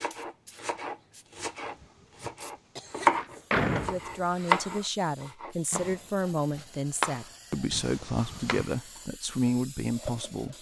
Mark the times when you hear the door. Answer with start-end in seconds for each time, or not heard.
3.0-4.8.